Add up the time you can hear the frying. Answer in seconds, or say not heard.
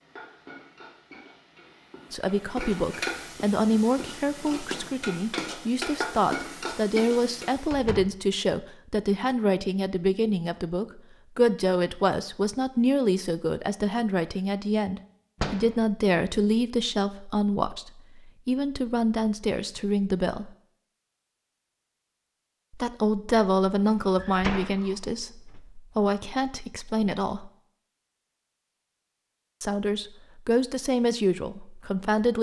8 s.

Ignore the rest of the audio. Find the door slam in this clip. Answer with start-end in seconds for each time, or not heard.
7.7-8.2, 15.4-15.8, 24.1-24.9.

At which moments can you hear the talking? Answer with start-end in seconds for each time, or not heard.
2.1-20.5, 22.7-27.5, 29.6-32.3.